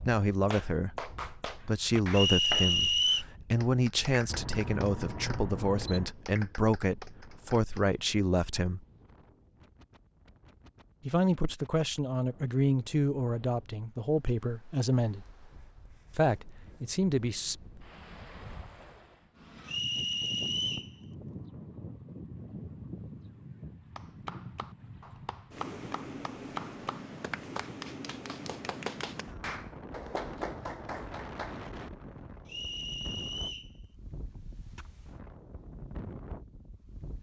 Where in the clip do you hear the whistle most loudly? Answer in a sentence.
The volume of the whistle peaks at 3 seconds.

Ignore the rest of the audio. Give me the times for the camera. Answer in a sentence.
The camera can be heard from 4.2 to 6.1 s.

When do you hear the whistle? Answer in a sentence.
You can hear the whistle from 2.1 to 3.2 s, from 19.6 to 20.9 s and from 32.5 to 33.7 s.